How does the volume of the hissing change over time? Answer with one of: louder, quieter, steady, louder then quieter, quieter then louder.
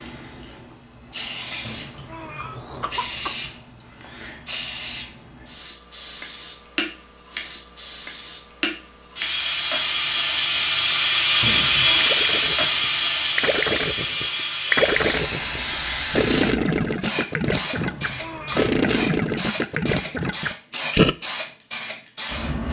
louder then quieter.